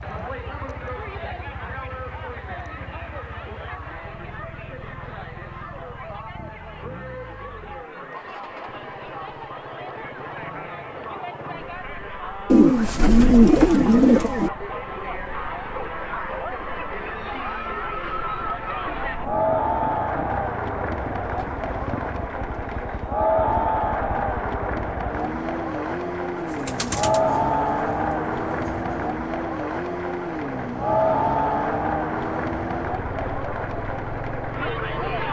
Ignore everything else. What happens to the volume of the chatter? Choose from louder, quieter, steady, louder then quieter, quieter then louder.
louder.